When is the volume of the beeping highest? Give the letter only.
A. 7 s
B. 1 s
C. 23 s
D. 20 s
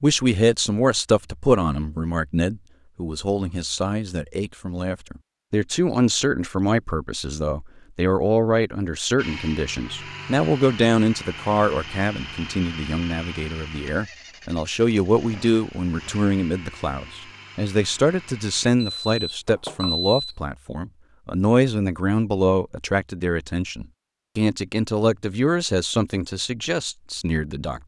D.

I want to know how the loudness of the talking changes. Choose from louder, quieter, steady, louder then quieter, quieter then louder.
steady.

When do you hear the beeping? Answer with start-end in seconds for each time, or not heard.
18.8-20.2.